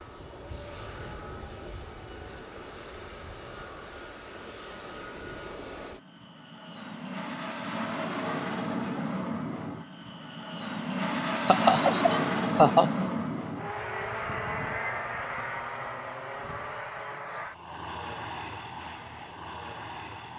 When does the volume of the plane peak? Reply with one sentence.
The volume of the plane peaks at 12 seconds.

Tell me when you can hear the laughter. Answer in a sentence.
You can hear the laughter from 11.4 to 13.1 s.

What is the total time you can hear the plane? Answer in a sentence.
The plane can be heard for 20 seconds in total.